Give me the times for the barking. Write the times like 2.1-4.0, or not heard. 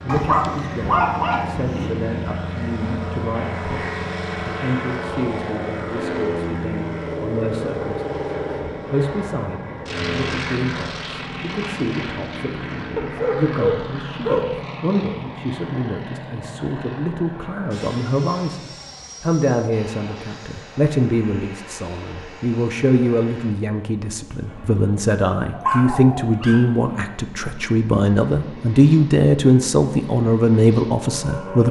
0.1-1.9, 12.9-14.7, 25.5-26.9.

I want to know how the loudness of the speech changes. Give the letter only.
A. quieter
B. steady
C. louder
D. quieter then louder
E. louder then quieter
C.